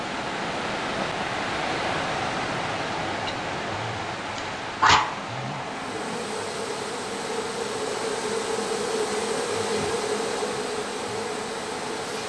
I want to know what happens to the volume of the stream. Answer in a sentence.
The volume of the stream goes down.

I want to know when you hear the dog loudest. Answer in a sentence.
The loudest moment of the dog is at 5 seconds.